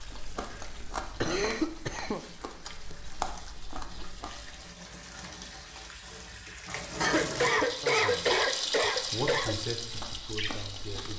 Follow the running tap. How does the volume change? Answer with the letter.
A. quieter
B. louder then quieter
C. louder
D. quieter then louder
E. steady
C.